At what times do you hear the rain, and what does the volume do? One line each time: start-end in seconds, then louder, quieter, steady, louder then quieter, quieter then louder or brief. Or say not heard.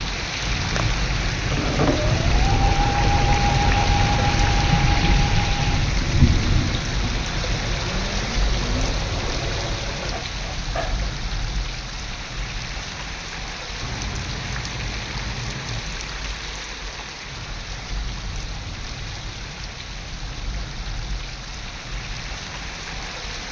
0.0-23.4 quieter.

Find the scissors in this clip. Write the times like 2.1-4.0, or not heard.
13.8-15.8.